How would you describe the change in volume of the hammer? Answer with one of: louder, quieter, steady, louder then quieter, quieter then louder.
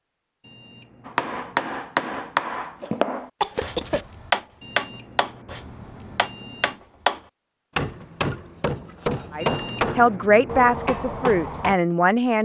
steady.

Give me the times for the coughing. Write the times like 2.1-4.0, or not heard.
3.4-4.0.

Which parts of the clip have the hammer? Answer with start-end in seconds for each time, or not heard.
1.1-11.8.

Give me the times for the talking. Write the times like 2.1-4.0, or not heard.
9.3-12.4.